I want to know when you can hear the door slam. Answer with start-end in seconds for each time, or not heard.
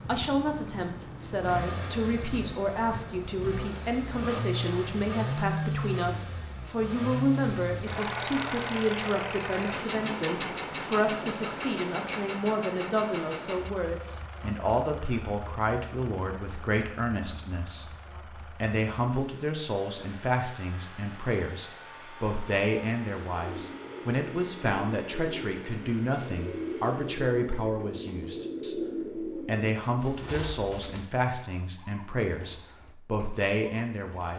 not heard.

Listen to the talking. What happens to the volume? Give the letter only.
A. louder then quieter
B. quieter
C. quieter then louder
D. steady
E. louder
D.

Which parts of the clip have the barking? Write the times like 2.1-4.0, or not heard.
not heard.